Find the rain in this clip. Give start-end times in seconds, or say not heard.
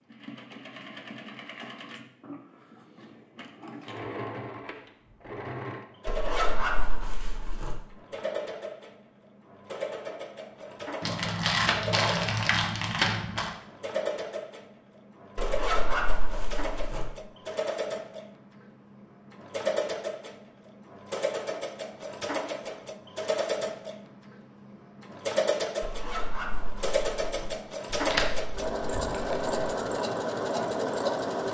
not heard.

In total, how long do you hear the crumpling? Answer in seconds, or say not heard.
4 s.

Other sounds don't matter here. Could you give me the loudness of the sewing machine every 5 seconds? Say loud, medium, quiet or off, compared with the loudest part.
quiet, medium, medium, medium, medium, loud, loud.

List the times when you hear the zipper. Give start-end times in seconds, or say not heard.
6.0-7.8, 15.3-17.1, 25.8-27.5.